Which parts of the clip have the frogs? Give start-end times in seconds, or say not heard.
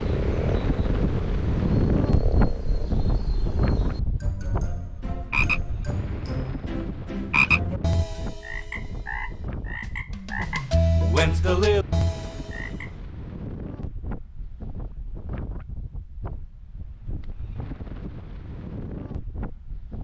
0.0-12.8.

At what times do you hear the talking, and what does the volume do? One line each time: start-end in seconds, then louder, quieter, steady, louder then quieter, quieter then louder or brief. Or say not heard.
not heard.